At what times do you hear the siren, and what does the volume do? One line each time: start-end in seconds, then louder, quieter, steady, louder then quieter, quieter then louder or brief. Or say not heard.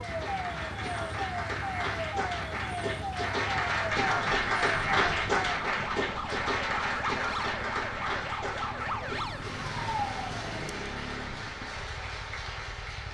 0.0-10.9 steady.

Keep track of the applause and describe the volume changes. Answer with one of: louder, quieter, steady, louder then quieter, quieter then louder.
louder then quieter.